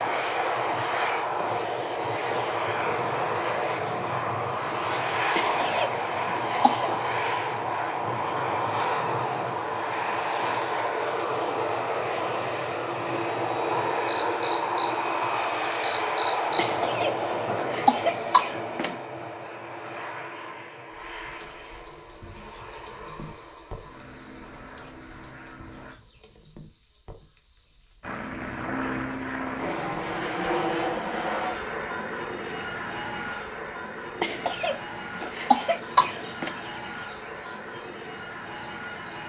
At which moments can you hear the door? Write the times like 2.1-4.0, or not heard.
not heard.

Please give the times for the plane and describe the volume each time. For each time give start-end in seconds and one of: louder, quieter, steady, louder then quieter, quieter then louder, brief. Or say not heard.
0.0-25.9 quieter
28.0-39.2 quieter.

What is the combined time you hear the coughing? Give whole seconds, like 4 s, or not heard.
6 s.